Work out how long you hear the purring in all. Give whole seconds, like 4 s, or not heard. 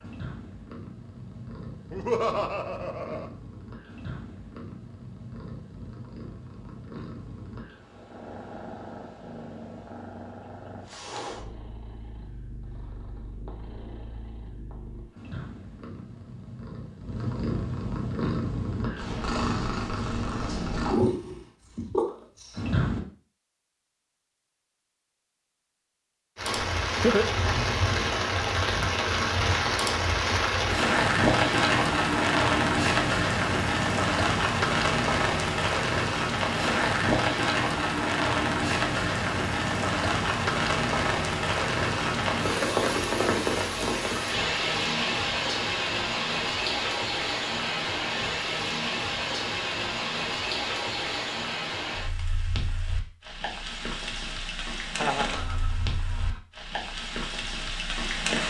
23 s.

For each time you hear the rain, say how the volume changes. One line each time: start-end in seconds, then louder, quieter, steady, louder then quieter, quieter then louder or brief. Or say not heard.
26.4-58.4 quieter.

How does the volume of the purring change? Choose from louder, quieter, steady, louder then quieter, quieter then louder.
louder.